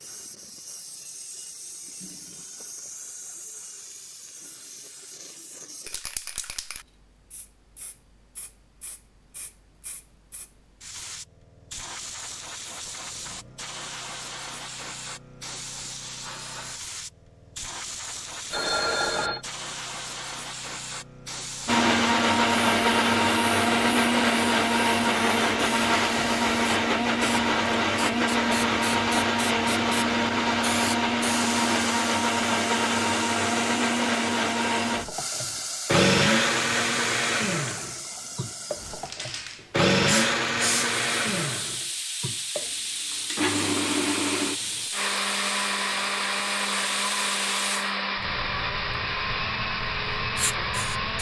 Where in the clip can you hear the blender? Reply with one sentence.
You can hear the blender from 21.6 to 51.1 s.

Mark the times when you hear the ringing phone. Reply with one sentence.
The ringing phone can be heard from 18.5 to 19.4 s.